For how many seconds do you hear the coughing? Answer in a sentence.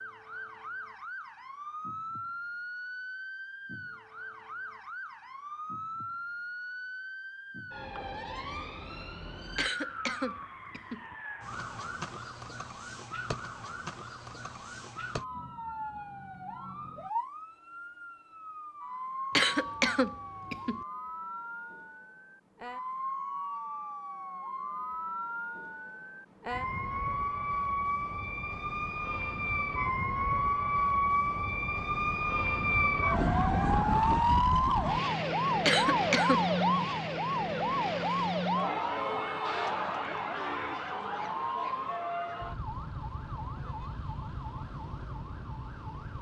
You can hear the coughing for 4 seconds altogether.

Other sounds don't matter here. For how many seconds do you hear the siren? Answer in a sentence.
The siren can be heard for 46 seconds in total.